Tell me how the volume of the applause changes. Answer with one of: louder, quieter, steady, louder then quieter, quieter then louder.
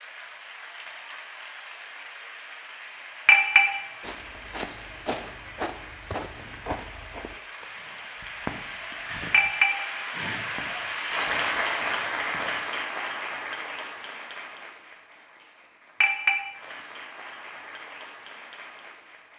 louder then quieter.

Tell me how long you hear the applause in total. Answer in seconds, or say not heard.
19 s.